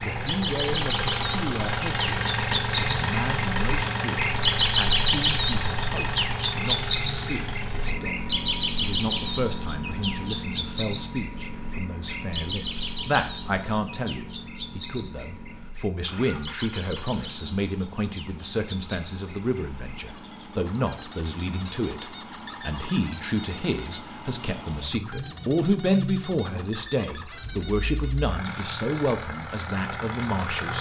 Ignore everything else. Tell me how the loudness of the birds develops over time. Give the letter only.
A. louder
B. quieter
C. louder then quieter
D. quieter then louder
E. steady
B.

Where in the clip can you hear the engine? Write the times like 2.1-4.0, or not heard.
0.0-30.7.